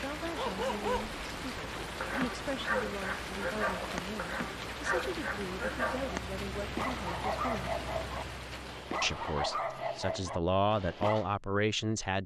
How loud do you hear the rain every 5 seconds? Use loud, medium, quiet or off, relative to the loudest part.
loud, loud, off.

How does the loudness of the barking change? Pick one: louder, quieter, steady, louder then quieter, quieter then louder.
steady.